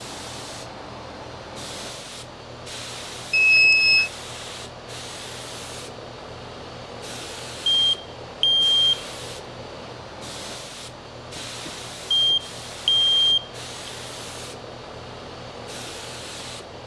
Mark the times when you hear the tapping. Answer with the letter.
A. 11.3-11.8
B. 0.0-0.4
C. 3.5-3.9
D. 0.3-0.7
A.